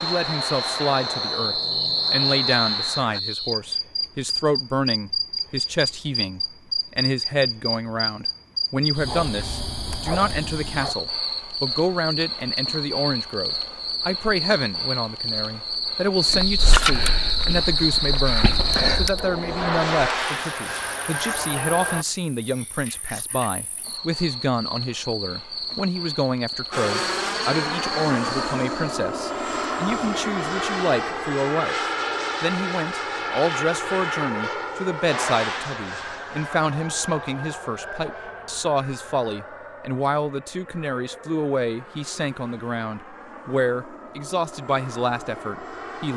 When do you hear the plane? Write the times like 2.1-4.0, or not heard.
0.0-3.2, 17.2-22.1, 26.7-46.1.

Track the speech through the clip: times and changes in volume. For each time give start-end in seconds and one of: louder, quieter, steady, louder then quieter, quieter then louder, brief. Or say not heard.
0.0-31.8 steady
32.4-46.1 steady.